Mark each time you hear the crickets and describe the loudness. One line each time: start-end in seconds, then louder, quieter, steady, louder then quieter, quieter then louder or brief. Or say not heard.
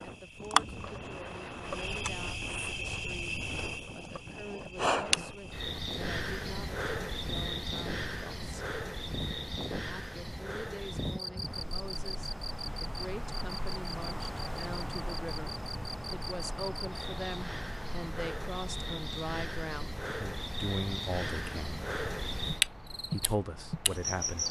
0.0-24.4 quieter then louder.